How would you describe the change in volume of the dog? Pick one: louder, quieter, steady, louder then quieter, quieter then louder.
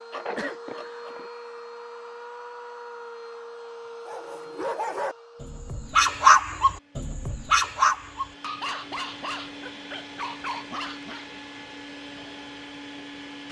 louder then quieter.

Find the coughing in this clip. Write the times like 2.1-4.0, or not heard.
0.1-1.3.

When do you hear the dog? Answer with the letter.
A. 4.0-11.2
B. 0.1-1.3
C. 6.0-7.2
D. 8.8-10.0
A.